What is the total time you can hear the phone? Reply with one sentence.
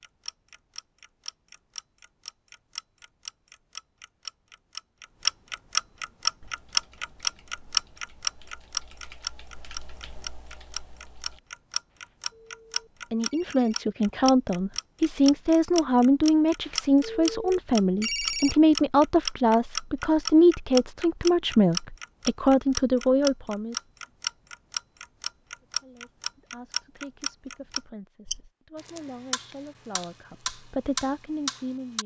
The phone can be heard for 4 seconds in total.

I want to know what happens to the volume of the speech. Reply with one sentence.
The loudness of the speech goes down, then up.